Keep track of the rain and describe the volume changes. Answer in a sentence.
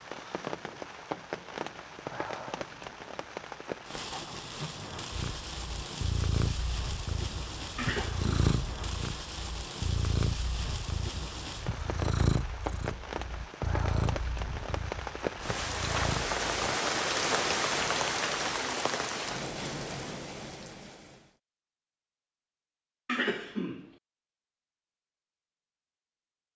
The volume of the rain goes up.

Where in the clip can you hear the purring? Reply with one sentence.
The purring can be heard from 5.1 to 16.8 s.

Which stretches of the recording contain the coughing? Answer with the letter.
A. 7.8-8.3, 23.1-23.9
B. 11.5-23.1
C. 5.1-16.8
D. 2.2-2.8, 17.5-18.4
A.